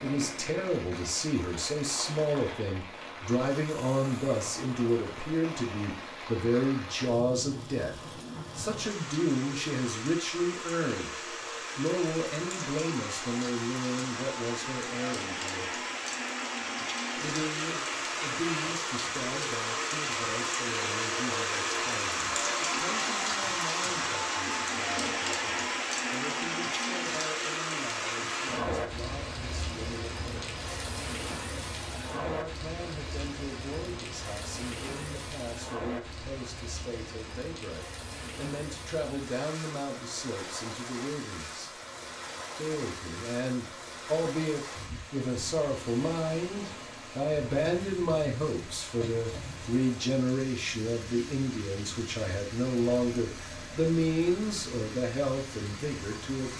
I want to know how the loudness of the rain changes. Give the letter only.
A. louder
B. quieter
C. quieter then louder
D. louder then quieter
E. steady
D.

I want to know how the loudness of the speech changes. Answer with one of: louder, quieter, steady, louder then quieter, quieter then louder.
quieter then louder.